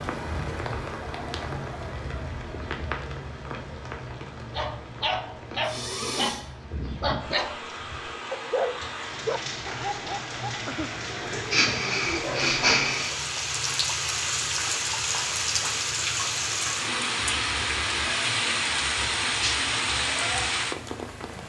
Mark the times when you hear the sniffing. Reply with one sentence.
You can hear the sniffing from 5.6 to 6.5 s and from 11.3 to 13.2 s.